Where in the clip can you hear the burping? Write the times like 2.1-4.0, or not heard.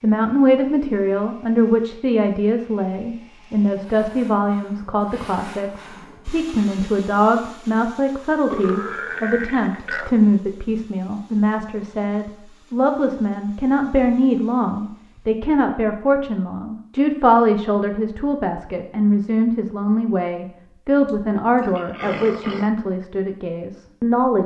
8.5-10.2, 21.1-22.7.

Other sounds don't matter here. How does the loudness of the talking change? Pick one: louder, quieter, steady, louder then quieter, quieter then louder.
steady.